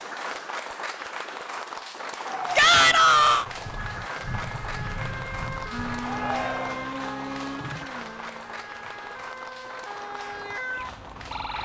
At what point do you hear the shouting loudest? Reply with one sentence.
The volume of the shouting peaks at 3 seconds.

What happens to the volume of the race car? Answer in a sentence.
The loudness of the race car goes down.